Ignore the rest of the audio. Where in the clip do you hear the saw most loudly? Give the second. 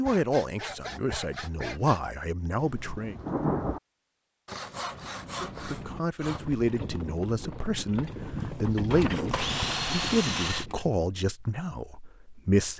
10 s.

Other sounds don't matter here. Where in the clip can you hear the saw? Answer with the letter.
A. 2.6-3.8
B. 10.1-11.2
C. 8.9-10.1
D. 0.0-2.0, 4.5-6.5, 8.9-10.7
D.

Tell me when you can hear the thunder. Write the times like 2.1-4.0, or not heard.
2.6-3.8.